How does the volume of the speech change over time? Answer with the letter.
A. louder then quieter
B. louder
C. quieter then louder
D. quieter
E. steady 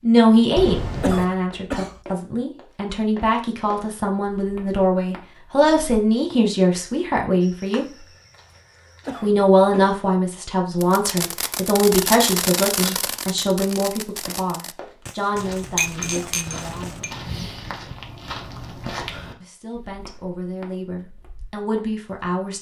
D.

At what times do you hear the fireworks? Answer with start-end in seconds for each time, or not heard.
10.8-17.0.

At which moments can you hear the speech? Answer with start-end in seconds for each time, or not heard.
0.0-8.1, 9.2-17.1, 19.4-22.5.